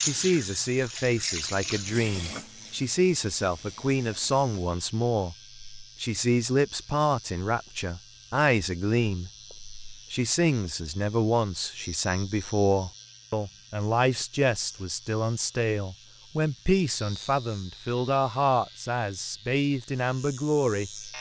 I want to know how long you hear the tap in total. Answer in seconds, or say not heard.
5 s.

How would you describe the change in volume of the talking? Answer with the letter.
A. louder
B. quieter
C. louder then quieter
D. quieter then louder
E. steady
E.